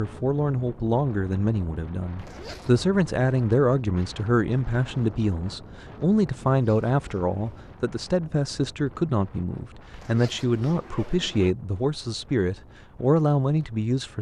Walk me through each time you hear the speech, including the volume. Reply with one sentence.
You can hear the speech from 0.0 to 14.1 s, at a steady volume.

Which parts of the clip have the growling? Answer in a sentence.
The growling can't be heard in this clip.